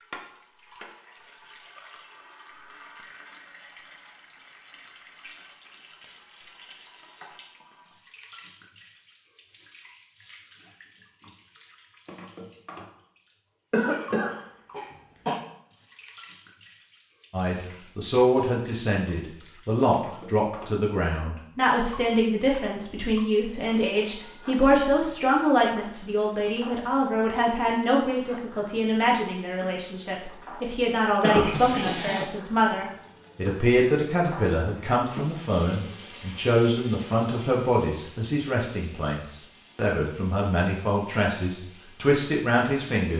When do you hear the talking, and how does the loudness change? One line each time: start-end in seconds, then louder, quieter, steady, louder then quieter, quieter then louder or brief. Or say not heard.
17.3-43.1 steady.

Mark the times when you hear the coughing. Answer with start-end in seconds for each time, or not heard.
13.7-15.3, 31.2-32.3.